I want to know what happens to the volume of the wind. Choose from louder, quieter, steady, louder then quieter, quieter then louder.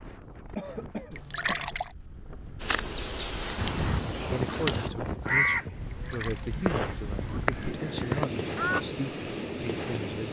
louder.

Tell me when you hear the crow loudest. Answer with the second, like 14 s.
5 s.